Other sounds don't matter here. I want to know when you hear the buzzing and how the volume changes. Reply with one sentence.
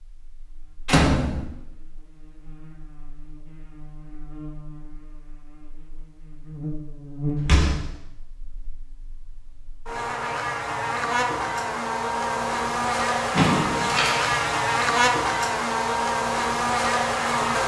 You can hear the buzzing from 0.1 to 17.6 s, getting louder.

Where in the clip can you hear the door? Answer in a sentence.
You can hear the door from 0.8 to 1.4 s, from 7.3 to 7.9 s and from 13.3 to 14.4 s.